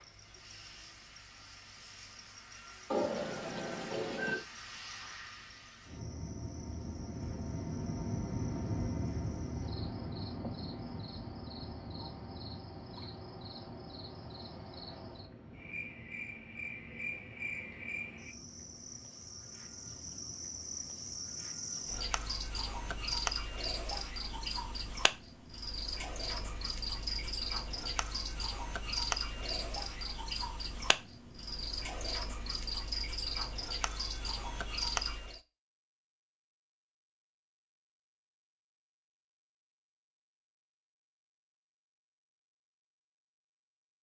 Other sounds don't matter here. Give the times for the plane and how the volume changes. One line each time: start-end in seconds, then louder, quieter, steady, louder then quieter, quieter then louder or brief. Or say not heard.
0.0-34.9 louder then quieter.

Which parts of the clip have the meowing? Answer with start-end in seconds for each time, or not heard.
2.9-4.5.